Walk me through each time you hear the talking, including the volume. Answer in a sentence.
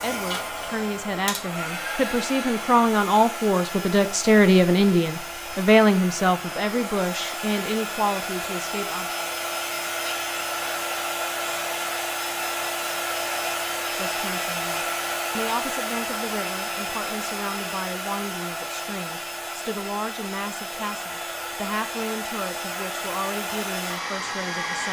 The talking can be heard from 0.0 to 9.2 s, getting louder then quieter; and from 13.9 to 24.8 s, at a steady volume.